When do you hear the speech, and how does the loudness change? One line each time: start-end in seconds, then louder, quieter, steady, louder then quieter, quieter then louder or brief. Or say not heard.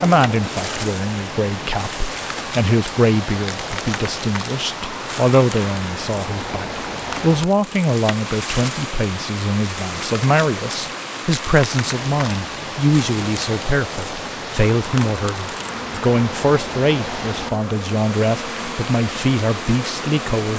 0.0-20.5 steady.